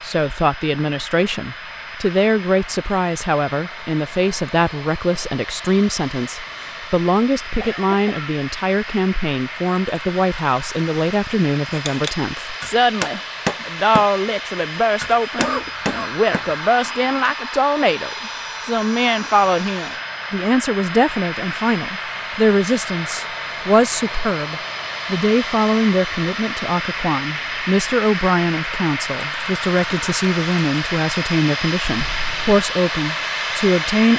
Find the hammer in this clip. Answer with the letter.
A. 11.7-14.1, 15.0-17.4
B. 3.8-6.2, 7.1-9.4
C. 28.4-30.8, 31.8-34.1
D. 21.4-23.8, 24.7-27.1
A.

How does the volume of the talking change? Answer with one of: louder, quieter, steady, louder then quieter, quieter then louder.
steady.